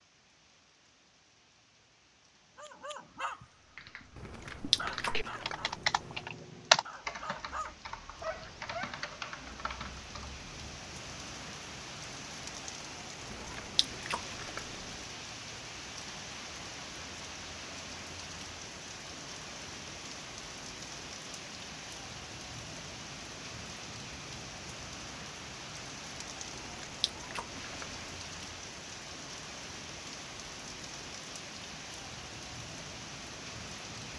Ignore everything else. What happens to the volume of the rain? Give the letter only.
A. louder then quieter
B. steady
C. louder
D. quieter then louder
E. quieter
C.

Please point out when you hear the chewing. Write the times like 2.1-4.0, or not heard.
4.2-6.2, 13.2-15.1, 26.4-28.1.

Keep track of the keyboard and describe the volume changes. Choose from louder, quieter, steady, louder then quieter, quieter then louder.
louder then quieter.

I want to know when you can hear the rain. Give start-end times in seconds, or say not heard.
0.0-34.1.